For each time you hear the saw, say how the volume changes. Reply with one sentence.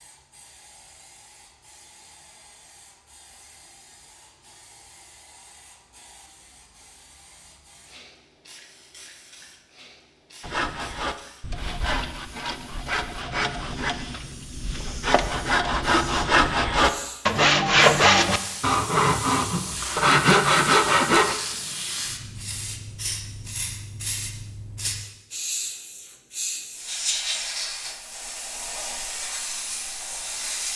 The saw can be heard from 10.4 to 21.4 s, getting louder.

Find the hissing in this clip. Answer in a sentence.
The hissing can be heard from 0.0 to 30.7 s.